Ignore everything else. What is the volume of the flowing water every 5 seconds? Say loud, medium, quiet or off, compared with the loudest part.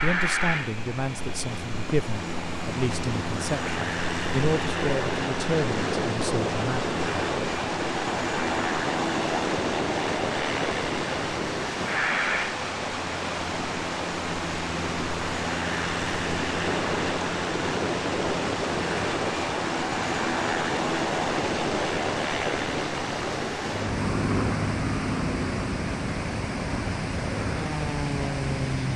medium, loud, loud, loud, loud, loud.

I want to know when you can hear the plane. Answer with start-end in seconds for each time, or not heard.
0.0-28.9.